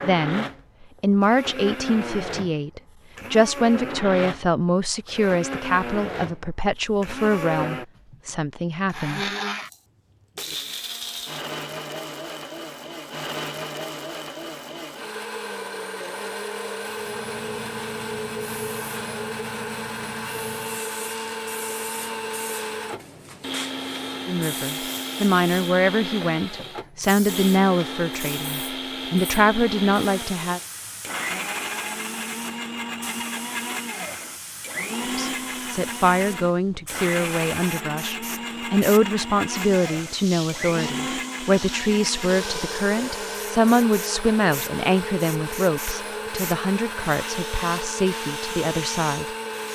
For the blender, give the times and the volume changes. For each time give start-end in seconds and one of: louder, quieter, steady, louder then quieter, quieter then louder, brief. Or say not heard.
0.0-49.7 steady.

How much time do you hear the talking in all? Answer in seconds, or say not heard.
30 s.